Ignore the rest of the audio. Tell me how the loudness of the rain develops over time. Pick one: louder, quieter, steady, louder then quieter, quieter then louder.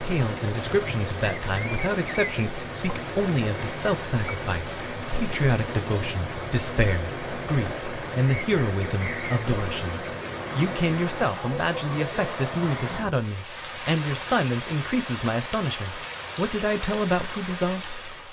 steady.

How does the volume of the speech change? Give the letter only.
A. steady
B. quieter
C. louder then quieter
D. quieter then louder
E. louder
A.